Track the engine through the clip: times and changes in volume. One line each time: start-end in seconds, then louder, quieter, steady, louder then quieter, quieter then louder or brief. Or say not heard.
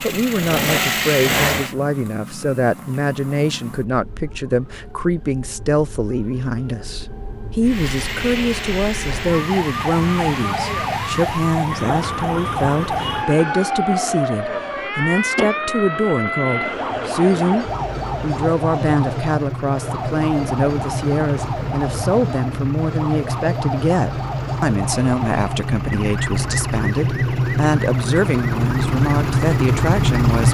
0.0-1.8 brief
7.6-30.4 louder.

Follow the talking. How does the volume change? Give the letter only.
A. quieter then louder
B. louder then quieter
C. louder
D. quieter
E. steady
E.